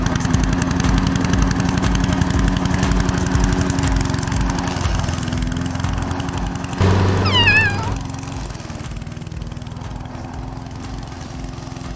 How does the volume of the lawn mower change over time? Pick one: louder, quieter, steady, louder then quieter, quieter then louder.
quieter.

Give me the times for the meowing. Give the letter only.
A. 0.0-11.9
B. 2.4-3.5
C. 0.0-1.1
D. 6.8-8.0
D.